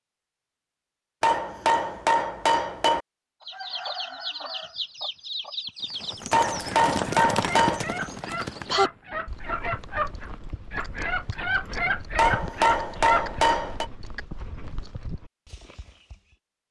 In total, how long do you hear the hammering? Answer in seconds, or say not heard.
5 s.